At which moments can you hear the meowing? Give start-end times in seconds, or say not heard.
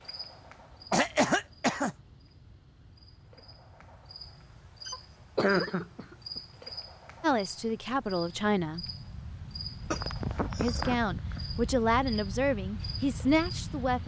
not heard.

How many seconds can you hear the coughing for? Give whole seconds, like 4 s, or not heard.
4 s.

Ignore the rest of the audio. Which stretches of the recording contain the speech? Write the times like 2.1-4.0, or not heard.
7.2-8.8, 10.6-14.0.